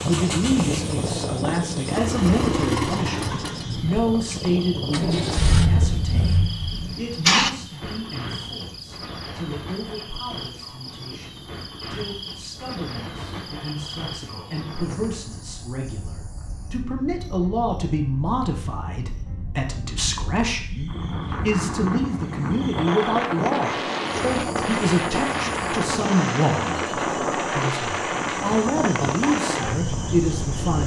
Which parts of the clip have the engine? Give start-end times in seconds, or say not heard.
0.0-7.5.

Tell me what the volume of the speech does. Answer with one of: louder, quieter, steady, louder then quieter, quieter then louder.
quieter then louder.